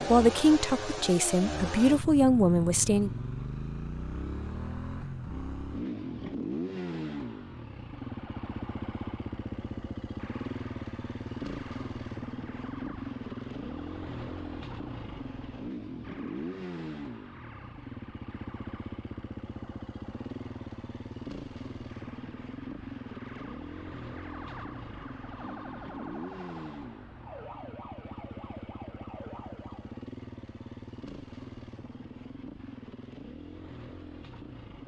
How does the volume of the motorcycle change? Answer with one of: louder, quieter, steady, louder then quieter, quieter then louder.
quieter.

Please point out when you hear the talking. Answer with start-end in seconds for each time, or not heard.
0.1-3.1.